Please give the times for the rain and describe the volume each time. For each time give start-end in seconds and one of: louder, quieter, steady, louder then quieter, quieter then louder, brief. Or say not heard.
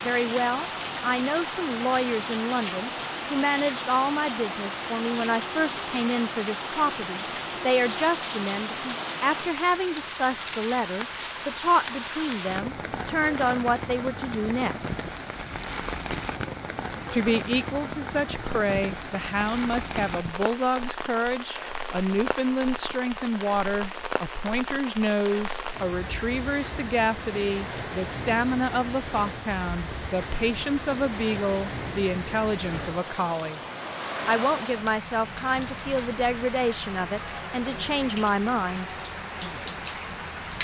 0.0-40.5 steady.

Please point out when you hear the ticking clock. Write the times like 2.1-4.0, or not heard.
not heard.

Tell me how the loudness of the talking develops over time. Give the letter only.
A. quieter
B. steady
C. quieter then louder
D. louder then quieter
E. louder
B.